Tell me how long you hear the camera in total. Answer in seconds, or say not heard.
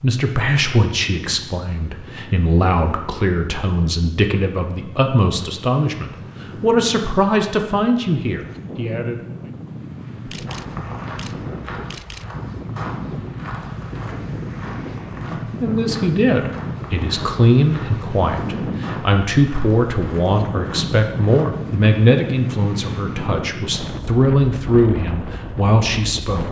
2 s.